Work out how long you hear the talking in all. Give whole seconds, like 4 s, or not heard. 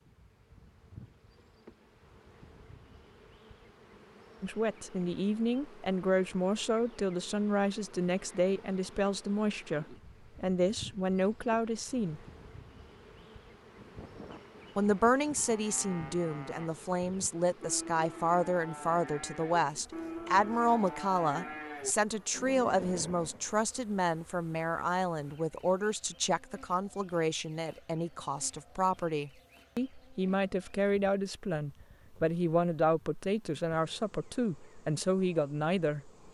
29 s.